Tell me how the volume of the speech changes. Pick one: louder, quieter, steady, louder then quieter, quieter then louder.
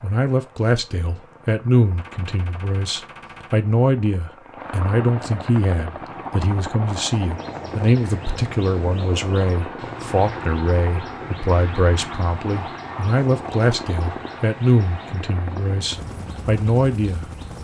steady.